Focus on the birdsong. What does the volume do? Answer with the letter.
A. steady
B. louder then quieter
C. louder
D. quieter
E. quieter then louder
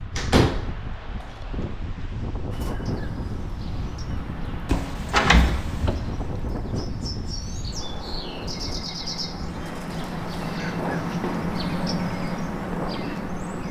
C.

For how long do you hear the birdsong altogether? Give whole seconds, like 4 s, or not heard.
11 s.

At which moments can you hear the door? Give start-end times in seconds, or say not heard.
0.1-1.2, 4.7-6.0, 10.6-11.5.